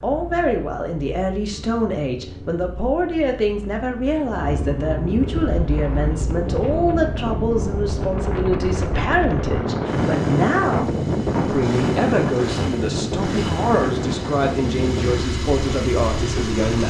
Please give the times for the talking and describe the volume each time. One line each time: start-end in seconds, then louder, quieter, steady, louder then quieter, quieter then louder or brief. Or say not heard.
0.0-16.8 steady.